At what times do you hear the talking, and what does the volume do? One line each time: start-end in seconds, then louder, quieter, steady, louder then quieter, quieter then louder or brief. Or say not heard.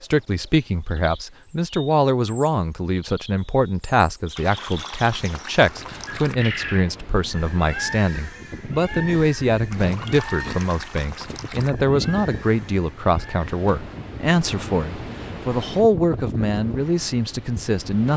0.0-18.1 steady.